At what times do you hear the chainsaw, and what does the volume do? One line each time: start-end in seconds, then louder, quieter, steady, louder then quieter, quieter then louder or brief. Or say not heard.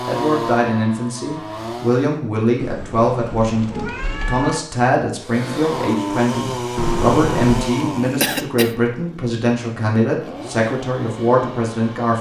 0.0-2.1 brief
5.2-12.1 quieter.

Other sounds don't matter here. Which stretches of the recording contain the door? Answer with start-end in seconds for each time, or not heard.
not heard.